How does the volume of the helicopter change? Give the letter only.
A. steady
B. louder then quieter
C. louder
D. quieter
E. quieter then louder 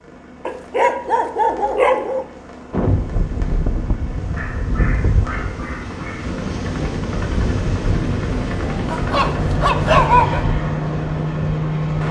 C.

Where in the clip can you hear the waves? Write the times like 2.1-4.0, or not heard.
2.7-12.0.